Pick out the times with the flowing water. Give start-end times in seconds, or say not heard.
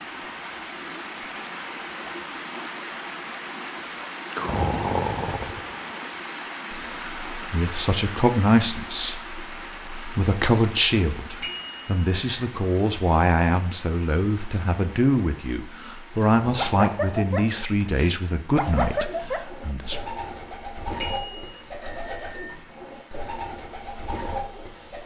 0.0-25.0.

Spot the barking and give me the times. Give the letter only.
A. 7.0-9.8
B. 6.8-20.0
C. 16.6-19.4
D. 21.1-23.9
C.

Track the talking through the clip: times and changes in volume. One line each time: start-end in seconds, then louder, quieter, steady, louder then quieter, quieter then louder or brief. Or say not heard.
6.8-20.0 steady.